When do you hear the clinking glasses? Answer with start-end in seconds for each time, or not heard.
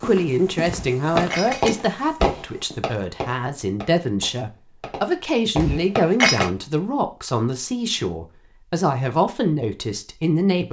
0.7-1.8, 5.5-6.5.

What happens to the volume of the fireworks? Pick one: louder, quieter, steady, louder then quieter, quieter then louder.
quieter then louder.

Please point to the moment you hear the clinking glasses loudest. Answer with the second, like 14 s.
6 s.